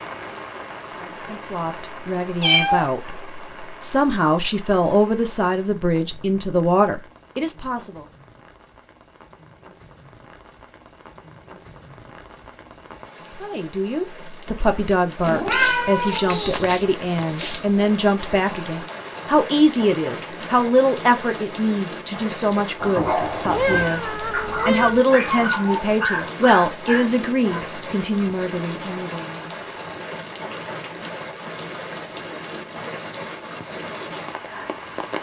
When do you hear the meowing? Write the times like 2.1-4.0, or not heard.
2.4-2.9, 15.2-17.6, 23.5-25.1.